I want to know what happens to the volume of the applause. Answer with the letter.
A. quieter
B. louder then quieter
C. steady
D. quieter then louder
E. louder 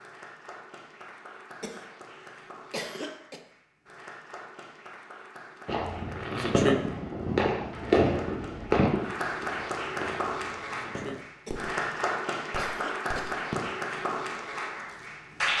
E.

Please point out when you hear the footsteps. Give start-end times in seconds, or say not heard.
not heard.